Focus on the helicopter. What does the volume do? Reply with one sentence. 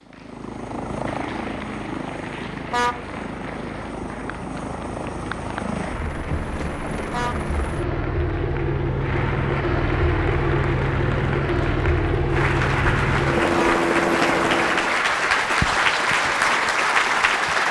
The volume of the helicopter goes up.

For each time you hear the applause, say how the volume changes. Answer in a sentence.
You can hear the applause from 0.0 to 17.6 s, getting louder.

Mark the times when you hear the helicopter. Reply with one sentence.
The helicopter can be heard from 0.0 to 15.1 s.